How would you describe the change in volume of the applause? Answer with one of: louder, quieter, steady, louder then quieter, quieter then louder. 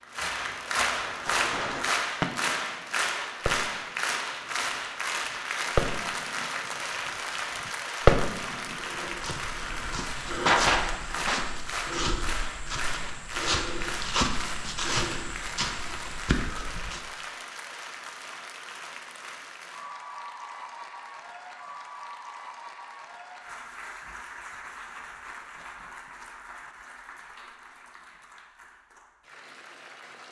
quieter.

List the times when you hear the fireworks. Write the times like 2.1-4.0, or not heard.
1.0-2.9, 3.5-4.7, 5.8-6.5, 7.7-8.8, 9.3-11.5.